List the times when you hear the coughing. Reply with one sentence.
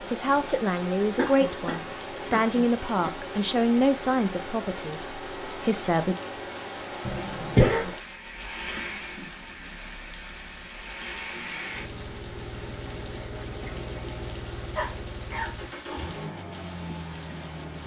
The coughing can be heard from 1.1 to 3.1 s, from 7.0 to 7.9 s and from 14.8 to 15.5 s.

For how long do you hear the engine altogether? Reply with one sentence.
You can hear the engine for 18 seconds altogether.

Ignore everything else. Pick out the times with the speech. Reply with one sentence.
The speech can be heard from 0.0 to 6.2 s.